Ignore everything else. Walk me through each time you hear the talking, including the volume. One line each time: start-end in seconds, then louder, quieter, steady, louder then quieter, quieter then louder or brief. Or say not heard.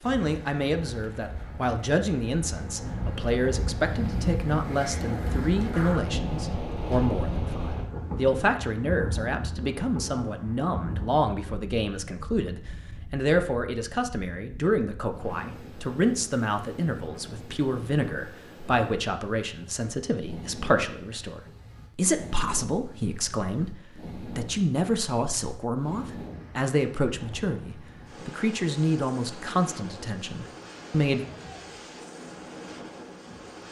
0.1-31.2 steady.